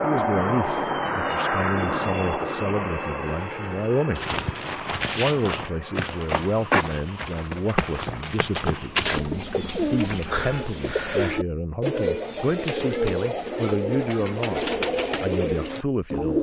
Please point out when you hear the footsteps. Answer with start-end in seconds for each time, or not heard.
4.2-9.2.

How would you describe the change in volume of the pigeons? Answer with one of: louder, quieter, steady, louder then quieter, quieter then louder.
steady.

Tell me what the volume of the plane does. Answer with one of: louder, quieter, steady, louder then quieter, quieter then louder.
quieter.